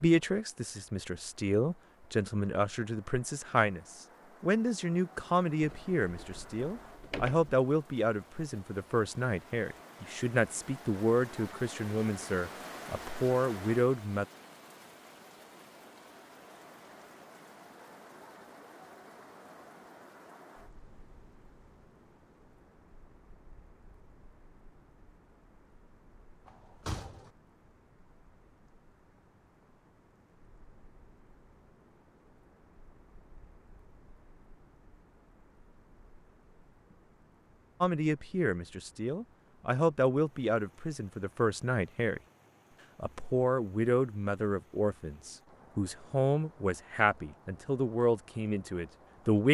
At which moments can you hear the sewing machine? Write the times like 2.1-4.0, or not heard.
not heard.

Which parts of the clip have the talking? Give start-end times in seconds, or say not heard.
0.0-14.2, 37.8-42.2, 43.0-49.4.